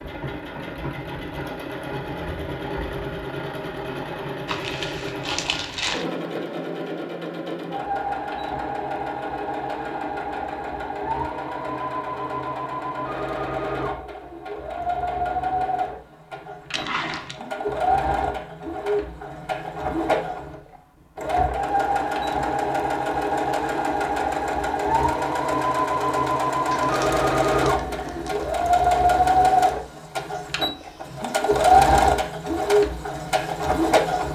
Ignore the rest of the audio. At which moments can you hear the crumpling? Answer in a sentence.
The crumpling can be heard from 4.5 to 6.0 s, from 16.7 to 17.4 s and from 26.7 to 28.5 s.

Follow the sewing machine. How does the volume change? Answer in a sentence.
The loudness of the sewing machine goes up.